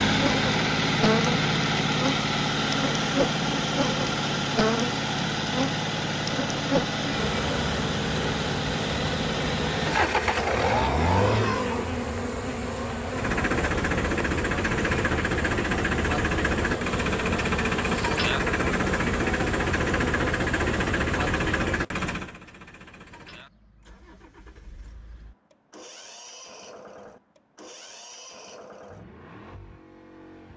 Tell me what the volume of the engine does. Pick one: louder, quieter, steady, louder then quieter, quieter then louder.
quieter.